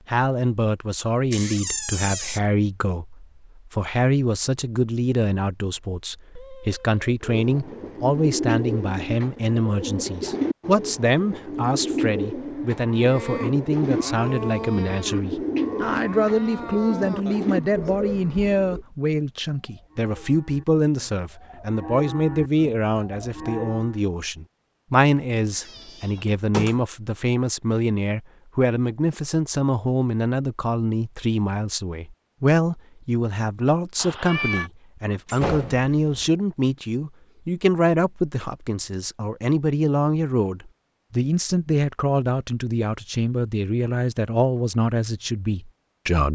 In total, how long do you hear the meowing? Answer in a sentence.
You can hear the meowing for 2 seconds altogether.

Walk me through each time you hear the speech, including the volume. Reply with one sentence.
You can hear the speech from 0.1 to 46.2 s, at a steady volume.